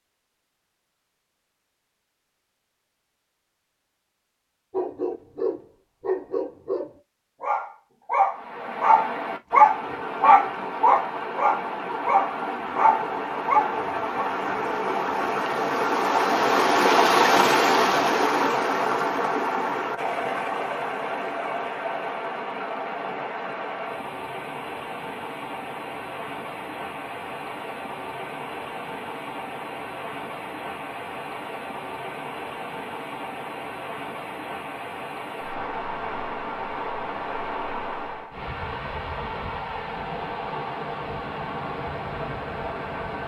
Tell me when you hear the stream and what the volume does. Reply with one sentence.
You can hear the stream from 8.3 to 43.2 s, getting louder then quieter.